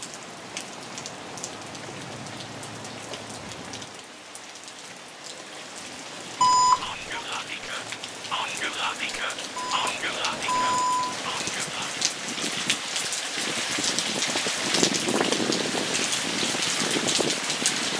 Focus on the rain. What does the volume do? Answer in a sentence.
The volume of the rain goes up.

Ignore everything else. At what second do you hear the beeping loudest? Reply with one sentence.
The volume of the beeping peaks at 7 seconds.